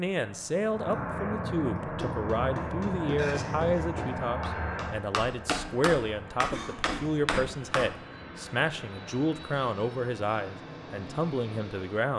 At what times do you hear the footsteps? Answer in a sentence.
You can't hear the footsteps here.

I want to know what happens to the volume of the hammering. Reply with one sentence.
The volume of the hammering goes up.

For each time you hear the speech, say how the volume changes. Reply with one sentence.
You can hear the speech from 0.0 to 12.1 s, at a steady volume.